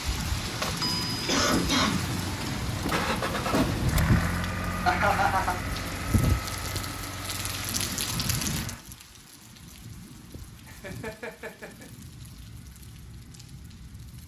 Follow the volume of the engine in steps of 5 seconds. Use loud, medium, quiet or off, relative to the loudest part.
loud, medium, off.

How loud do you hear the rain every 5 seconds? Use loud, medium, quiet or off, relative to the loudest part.
loud, loud, quiet.